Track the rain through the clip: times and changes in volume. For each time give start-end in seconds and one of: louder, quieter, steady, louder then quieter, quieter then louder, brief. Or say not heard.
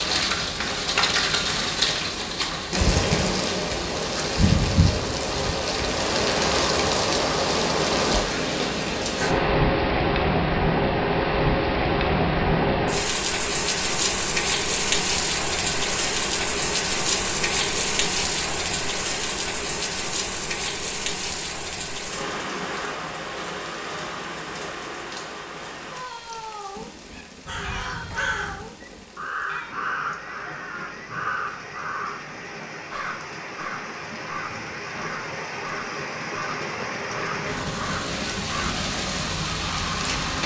0.0-40.4 quieter then louder.